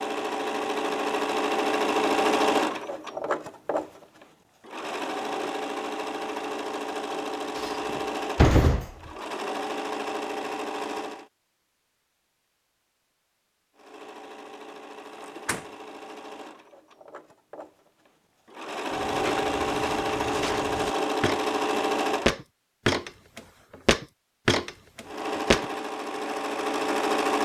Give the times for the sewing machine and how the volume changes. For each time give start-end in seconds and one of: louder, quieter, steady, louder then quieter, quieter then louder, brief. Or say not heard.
0.0-11.3 quieter
13.8-22.4 louder
25.1-27.4 brief.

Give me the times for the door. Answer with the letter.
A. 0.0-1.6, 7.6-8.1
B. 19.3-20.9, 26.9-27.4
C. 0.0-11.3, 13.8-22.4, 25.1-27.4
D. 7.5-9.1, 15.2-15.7
D.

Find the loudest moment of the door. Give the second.
9 s.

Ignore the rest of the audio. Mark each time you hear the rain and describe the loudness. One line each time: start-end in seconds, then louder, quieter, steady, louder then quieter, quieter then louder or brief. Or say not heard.
not heard.